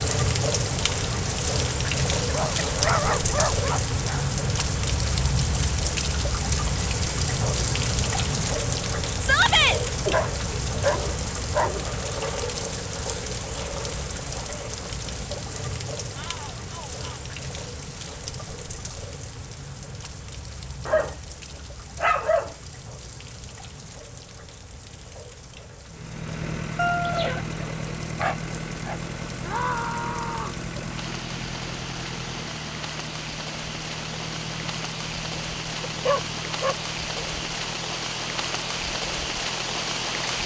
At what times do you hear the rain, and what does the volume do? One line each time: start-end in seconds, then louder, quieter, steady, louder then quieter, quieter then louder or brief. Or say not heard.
0.0-40.4 quieter then louder.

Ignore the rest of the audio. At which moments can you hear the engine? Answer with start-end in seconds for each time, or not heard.
25.9-40.4.